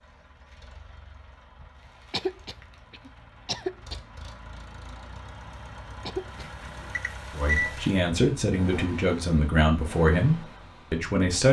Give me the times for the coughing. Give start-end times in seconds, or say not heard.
2.1-4.0, 6.0-6.5.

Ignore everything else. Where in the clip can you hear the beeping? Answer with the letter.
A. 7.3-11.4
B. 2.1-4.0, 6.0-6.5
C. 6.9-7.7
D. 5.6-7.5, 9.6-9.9
C.